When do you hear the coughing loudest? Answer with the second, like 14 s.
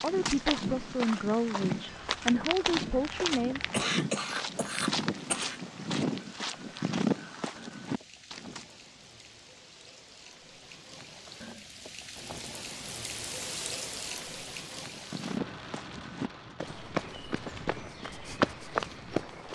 4 s.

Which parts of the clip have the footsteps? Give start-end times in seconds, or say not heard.
0.0-8.7, 14.8-19.5.